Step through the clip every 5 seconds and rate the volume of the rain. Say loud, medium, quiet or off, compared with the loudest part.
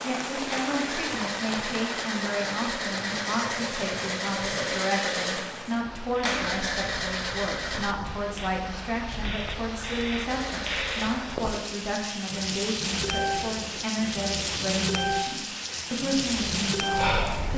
medium, medium, loud, loud.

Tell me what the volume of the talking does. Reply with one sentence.
The loudness of the talking stays about the same.